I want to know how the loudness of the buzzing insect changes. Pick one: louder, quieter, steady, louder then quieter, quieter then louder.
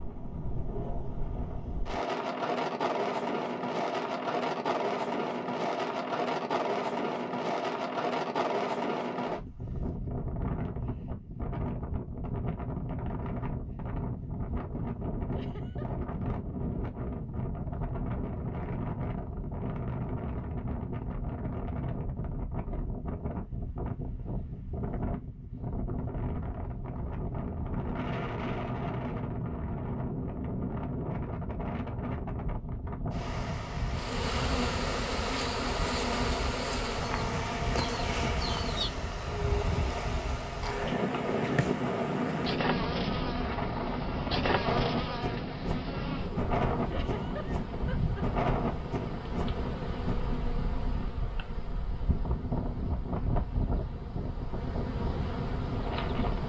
quieter.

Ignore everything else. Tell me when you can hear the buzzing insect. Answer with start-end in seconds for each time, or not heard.
33.9-56.4.